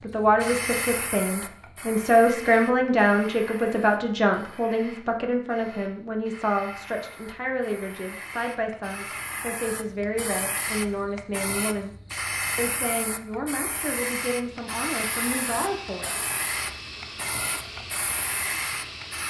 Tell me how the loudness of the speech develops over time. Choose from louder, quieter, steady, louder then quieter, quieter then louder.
quieter.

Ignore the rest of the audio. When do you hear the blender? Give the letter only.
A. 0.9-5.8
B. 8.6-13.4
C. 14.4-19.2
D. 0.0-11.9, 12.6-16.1
C.